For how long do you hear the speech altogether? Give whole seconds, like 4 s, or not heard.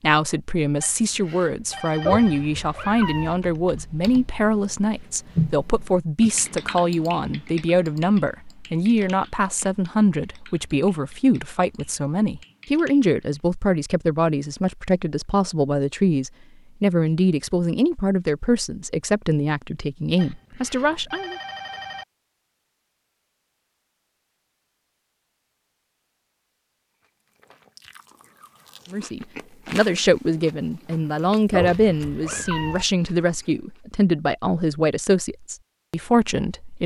29 s.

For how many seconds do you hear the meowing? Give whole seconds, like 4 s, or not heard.
3 s.